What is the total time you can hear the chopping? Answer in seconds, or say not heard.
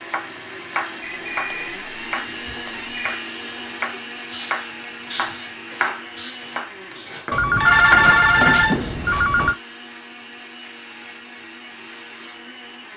9 s.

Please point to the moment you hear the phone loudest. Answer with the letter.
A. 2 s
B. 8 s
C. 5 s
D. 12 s
B.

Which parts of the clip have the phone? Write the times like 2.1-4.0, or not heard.
1.0-3.2, 7.3-9.6.